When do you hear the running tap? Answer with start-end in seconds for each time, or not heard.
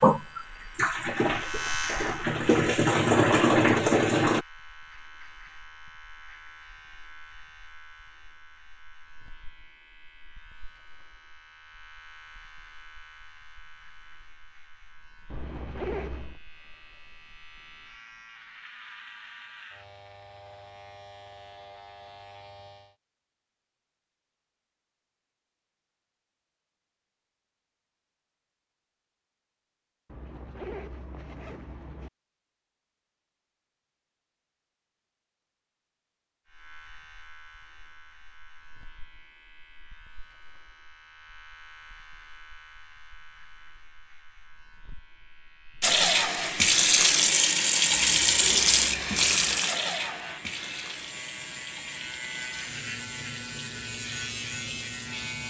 0.0-4.5, 45.8-55.4.